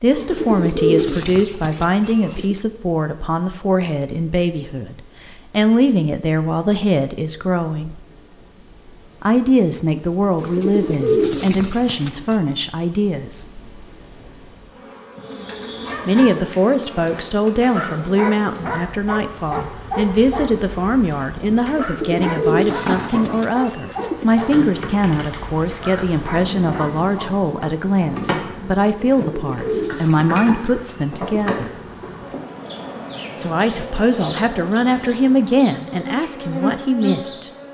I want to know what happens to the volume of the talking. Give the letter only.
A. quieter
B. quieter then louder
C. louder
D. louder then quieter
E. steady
E.